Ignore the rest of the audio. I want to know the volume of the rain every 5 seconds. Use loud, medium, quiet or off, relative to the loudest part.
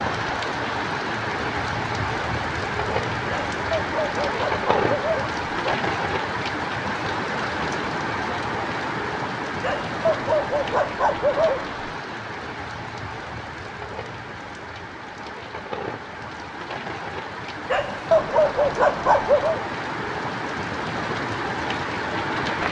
loud, loud, medium, medium, loud.